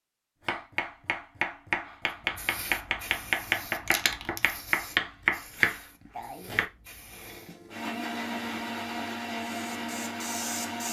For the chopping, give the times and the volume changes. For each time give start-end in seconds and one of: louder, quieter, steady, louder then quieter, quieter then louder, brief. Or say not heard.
0.5-6.7 louder.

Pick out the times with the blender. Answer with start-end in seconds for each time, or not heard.
7.0-10.8.